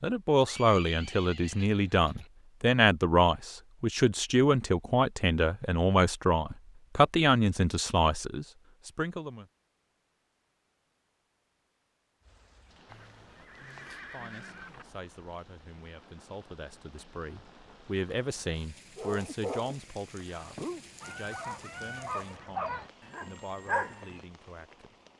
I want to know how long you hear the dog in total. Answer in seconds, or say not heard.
5 s.